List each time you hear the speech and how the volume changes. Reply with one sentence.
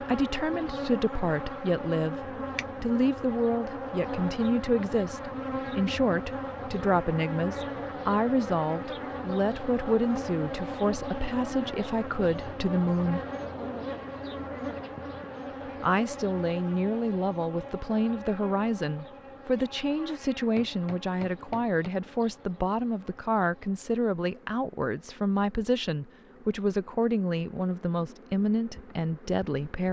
The speech can be heard from 0.0 to 13.2 s, at a steady volume; and from 15.8 to 29.8 s, at a steady volume.